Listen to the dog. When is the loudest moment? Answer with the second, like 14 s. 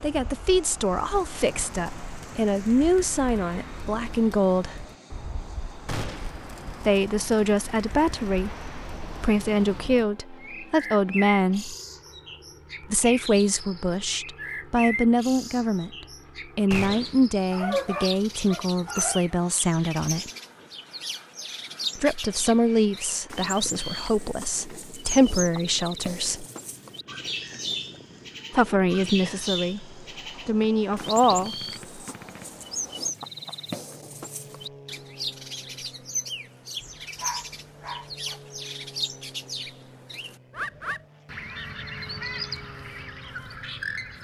18 s.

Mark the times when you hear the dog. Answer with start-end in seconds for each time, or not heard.
17.5-19.4, 36.8-38.4.